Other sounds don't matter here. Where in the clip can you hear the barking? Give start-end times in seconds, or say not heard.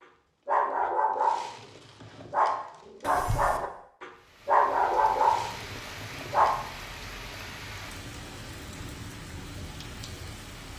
0.5-6.6.